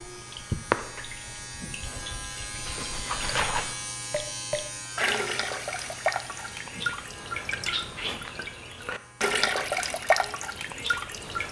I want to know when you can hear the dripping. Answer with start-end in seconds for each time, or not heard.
0.0-11.4.